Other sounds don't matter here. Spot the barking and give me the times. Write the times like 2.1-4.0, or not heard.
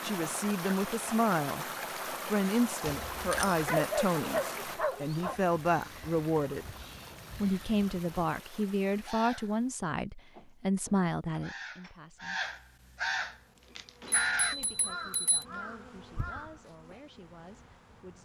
3.6-5.4.